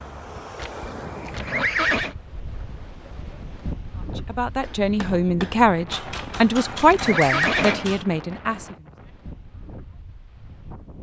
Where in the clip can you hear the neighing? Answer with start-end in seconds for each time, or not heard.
0.6-2.1, 6.1-7.8.